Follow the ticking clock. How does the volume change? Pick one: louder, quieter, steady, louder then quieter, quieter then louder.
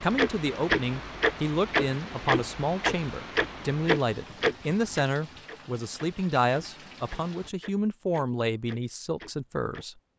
quieter.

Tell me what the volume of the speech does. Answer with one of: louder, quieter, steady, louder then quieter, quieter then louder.
steady.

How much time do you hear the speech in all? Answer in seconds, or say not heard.
10 s.